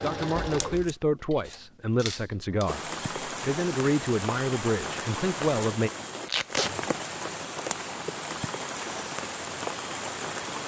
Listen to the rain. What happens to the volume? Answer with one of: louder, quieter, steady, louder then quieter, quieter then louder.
steady.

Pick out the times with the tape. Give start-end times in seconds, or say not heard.
0.3-0.9, 6.2-6.8.